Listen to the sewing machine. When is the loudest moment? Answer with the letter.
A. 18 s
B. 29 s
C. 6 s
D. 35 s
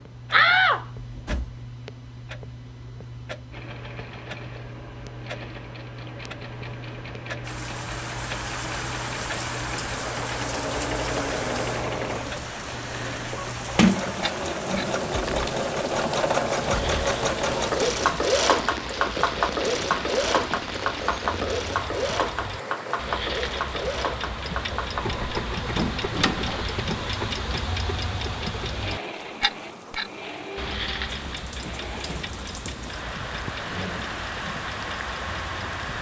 A.